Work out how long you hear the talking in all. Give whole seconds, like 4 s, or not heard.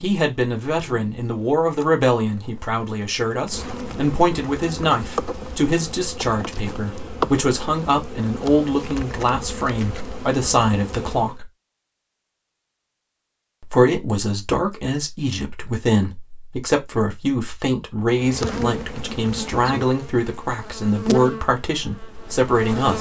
21 s.